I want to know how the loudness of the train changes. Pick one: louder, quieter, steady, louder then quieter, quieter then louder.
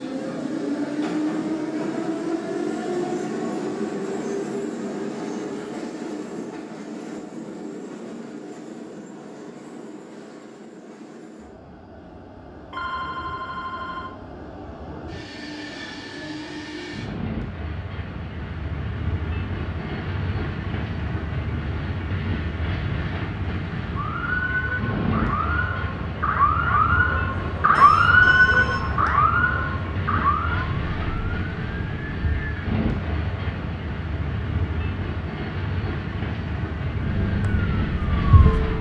quieter then louder.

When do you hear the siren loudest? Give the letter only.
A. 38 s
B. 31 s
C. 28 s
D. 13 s
C.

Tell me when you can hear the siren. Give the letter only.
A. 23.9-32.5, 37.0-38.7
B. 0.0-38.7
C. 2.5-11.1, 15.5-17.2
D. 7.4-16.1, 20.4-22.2
A.